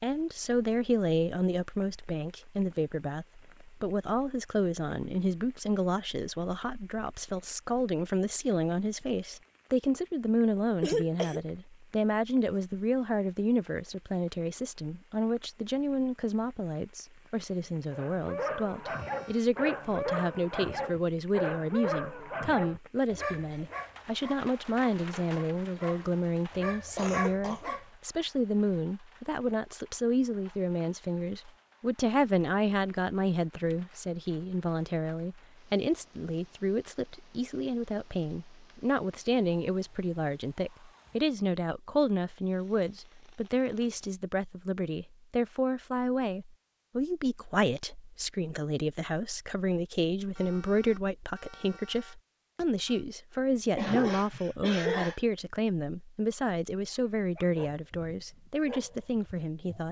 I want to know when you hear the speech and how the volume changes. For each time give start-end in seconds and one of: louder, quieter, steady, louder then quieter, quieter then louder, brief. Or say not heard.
0.0-59.8 steady.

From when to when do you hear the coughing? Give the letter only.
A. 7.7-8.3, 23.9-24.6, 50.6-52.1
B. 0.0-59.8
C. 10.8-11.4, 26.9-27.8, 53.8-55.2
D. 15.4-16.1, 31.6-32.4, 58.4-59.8
C.